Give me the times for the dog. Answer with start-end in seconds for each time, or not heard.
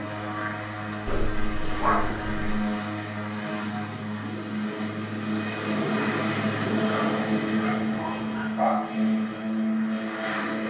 1.1-2.6, 6.9-8.9.